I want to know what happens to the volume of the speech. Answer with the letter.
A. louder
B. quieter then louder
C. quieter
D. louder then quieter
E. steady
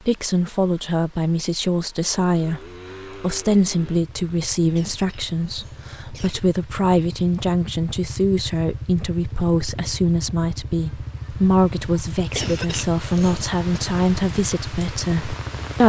E.